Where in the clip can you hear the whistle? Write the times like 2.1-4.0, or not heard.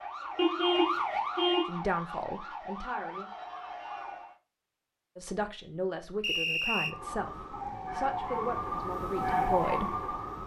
6.2-7.0.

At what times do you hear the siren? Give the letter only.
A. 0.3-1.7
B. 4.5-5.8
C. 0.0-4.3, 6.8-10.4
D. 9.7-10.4
C.